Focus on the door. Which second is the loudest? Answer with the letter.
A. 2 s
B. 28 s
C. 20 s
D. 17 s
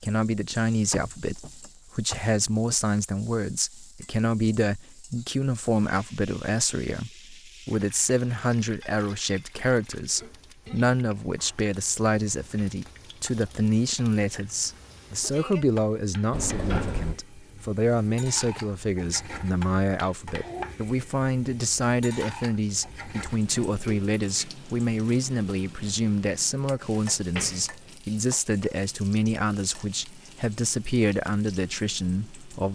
D.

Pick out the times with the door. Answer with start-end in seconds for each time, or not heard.
0.9-2.8, 16.3-17.2, 27.1-27.9.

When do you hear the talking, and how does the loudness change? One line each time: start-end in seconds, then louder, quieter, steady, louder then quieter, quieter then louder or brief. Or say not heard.
0.0-32.7 steady.